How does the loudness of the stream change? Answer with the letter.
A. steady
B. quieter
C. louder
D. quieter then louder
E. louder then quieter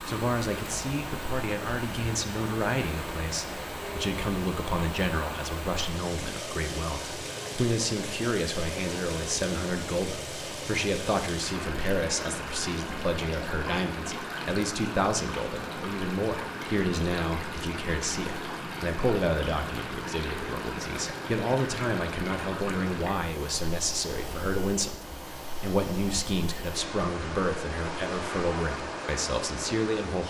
A.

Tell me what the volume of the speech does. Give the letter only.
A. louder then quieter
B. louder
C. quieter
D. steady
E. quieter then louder
D.